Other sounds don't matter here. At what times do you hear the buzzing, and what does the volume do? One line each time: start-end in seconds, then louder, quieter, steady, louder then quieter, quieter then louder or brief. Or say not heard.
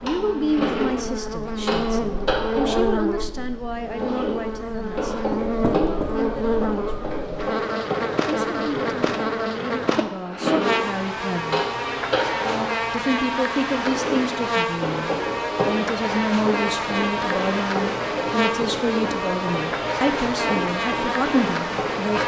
0.0-22.2 steady.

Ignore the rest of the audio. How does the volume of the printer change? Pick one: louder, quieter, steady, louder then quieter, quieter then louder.
steady.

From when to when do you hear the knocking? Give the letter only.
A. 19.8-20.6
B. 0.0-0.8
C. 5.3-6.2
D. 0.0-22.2
C.